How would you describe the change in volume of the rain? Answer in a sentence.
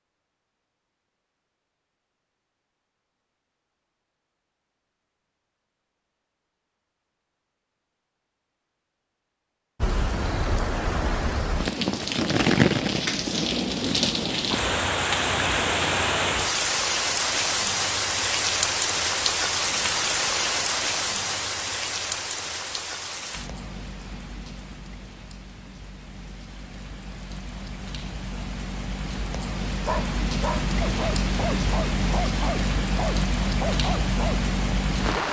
The volume of the rain goes down, then up.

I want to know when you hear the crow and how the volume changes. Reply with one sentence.
The crow can't be heard in this clip.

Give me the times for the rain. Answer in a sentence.
You can hear the rain from 9.8 to 35.2 s.